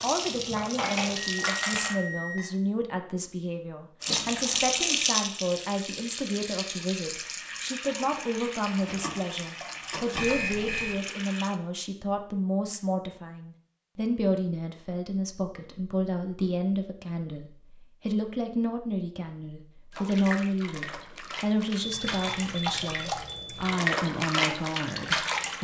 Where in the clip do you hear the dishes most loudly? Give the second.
1 s.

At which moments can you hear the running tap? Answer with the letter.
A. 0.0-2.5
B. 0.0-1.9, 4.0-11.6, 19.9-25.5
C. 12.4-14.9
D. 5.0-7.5
B.